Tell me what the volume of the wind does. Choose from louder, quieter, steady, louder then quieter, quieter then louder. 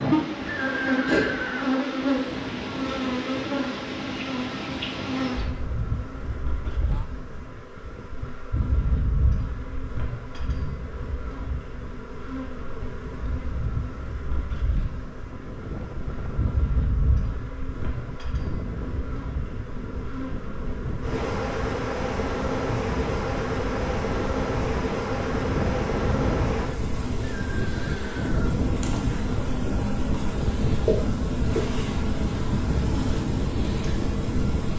louder.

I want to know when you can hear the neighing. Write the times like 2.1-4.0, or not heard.
0.5-1.7, 27.2-28.6.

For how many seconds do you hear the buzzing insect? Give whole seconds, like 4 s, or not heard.
35 s.